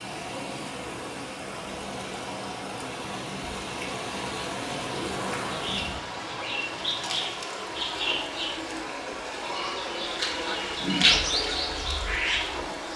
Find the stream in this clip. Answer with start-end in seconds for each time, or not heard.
0.0-12.9.